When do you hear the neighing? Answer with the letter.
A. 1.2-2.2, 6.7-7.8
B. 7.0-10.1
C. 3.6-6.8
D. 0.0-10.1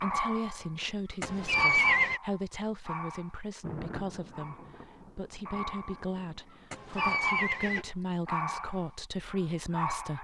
A.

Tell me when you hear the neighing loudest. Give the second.
2 s.